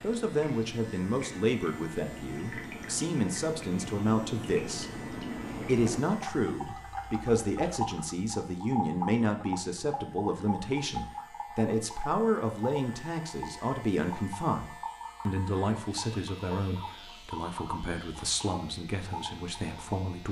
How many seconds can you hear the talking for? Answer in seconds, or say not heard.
20 s.